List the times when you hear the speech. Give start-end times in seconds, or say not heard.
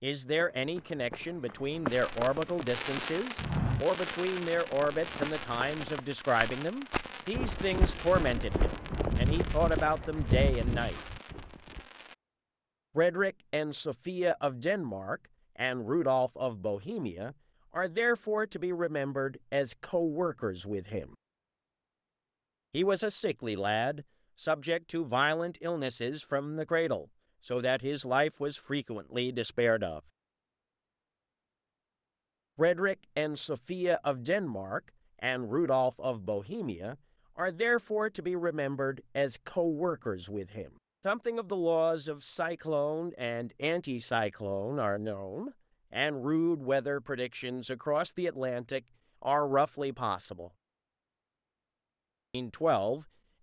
0.0-11.0, 12.9-21.1, 22.7-30.0, 32.5-50.5, 52.3-53.0.